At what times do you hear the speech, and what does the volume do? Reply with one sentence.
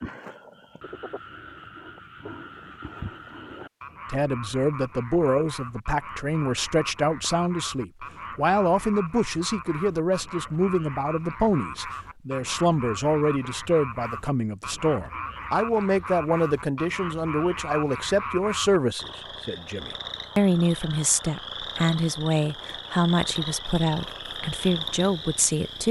The speech can be heard from 4.1 to 25.8 s, at a steady volume.